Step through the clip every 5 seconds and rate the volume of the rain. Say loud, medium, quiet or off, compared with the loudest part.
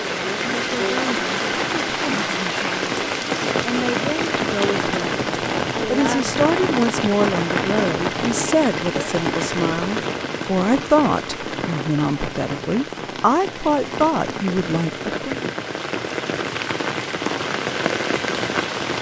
loud, loud, medium, loud.